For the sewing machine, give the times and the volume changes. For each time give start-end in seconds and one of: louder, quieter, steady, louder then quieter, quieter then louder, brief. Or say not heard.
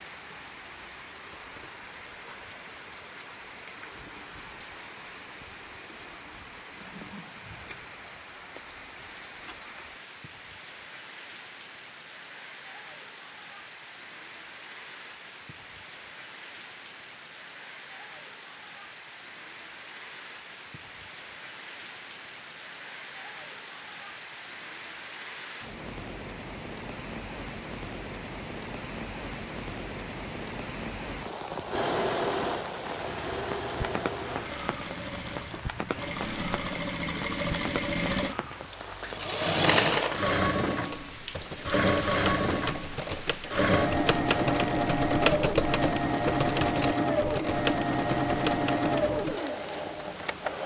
31.7-50.6 louder.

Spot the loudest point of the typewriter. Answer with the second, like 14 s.
45 s.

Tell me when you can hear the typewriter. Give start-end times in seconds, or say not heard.
40.9-49.4.